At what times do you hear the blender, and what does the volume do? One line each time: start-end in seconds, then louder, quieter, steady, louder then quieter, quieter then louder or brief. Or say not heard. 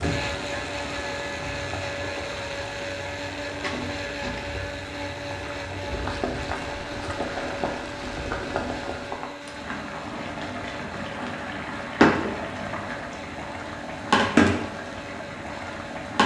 0.0-16.2 quieter.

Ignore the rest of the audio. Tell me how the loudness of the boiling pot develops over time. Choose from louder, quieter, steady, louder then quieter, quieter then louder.
louder.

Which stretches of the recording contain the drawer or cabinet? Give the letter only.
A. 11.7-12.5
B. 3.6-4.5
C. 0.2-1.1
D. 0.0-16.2
B.